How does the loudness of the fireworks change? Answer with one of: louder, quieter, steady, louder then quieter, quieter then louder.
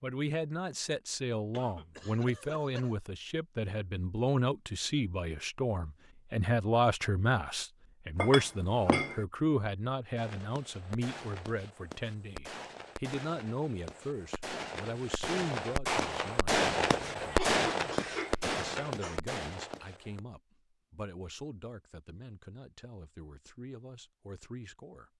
louder then quieter.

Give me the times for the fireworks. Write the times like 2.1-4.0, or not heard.
10.2-20.2.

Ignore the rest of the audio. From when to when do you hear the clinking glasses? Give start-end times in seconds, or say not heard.
8.2-9.2.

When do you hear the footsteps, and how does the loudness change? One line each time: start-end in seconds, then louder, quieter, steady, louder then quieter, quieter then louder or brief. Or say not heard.
not heard.